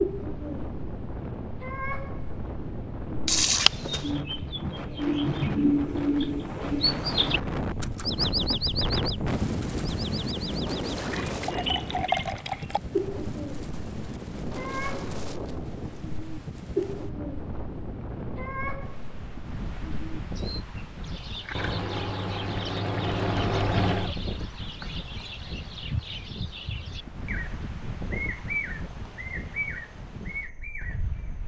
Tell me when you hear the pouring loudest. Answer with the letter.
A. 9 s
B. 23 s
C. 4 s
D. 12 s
C.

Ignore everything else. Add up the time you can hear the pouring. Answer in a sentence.
You can hear the pouring for 5 seconds altogether.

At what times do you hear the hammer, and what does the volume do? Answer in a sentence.
You can't hear the hammer here.